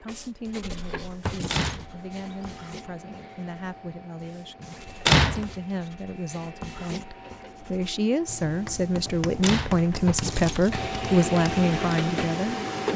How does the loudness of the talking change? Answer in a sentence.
The volume of the talking goes up.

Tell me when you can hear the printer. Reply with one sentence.
The printer can be heard from 0.0 to 12.9 s.